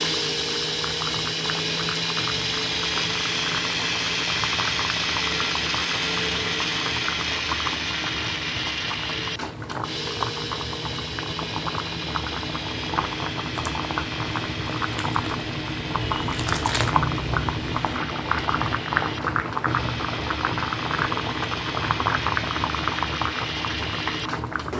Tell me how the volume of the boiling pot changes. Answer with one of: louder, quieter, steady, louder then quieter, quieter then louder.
louder.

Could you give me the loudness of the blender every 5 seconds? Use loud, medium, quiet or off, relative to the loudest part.
loud, loud, medium, medium, medium.